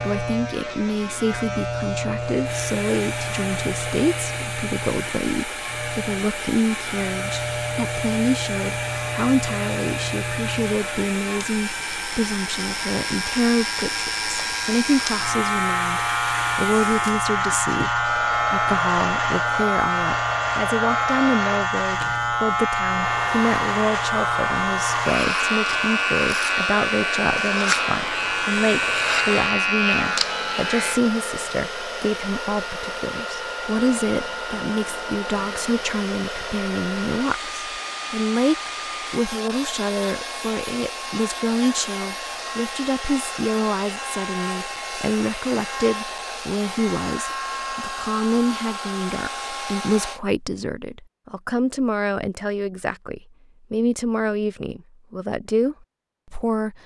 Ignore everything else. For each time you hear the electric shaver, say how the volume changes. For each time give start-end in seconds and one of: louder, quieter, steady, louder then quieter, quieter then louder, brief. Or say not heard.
0.0-31.0 louder.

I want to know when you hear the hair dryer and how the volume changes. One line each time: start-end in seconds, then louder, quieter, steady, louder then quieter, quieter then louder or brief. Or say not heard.
2.4-50.2 steady.